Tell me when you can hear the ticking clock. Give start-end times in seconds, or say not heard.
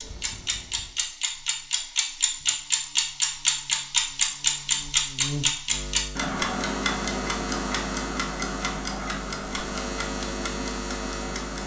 0.0-11.6.